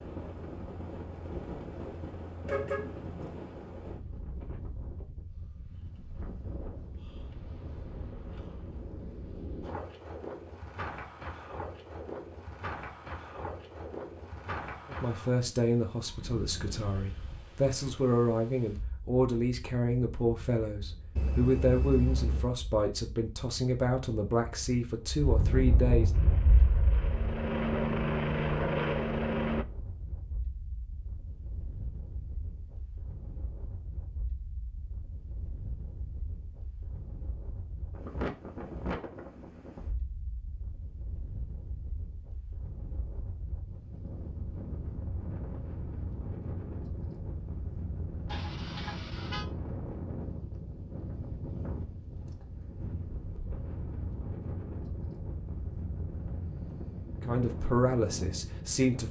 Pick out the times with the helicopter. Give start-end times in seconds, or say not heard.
26.1-29.6.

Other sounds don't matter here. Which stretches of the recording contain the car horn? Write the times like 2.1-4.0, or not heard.
2.5-3.4, 21.1-22.6, 48.2-49.5.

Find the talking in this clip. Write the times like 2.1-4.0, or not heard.
14.9-26.1, 57.2-59.0.